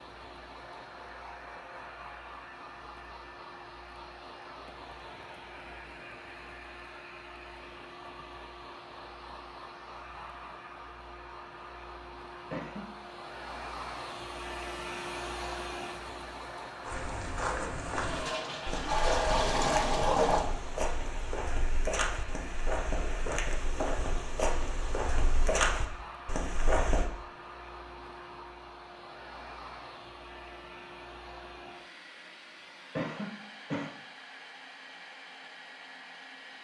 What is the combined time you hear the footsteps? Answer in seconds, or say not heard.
10 s.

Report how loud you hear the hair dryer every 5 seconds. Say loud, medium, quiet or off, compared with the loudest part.
medium, medium, loud, loud, medium, medium, medium, medium.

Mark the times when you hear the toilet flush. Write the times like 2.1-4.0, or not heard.
17.9-20.4.